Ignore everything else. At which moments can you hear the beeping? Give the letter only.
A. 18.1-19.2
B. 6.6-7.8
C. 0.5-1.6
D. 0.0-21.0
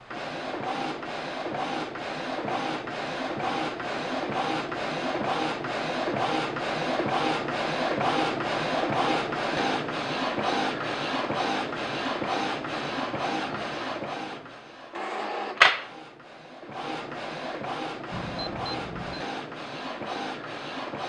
A.